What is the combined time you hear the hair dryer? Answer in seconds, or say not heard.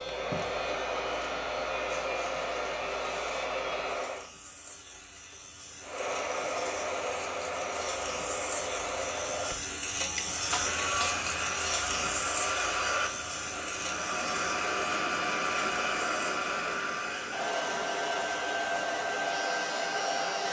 19 s.